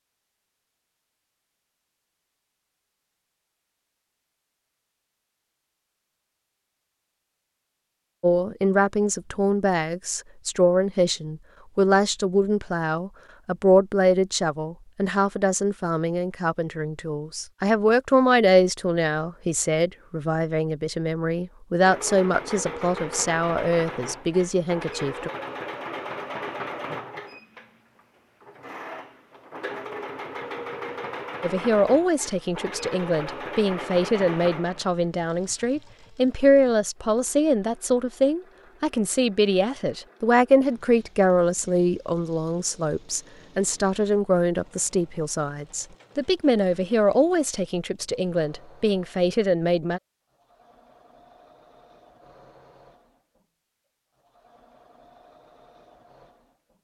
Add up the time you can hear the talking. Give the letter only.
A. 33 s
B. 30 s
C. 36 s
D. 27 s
C.